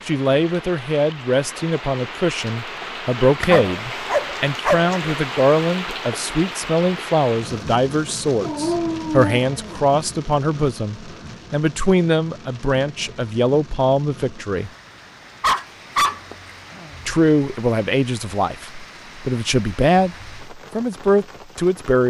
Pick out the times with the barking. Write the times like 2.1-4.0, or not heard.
3.4-5.0, 8.4-10.0, 15.4-16.5.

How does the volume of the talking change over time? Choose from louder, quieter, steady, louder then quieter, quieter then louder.
steady.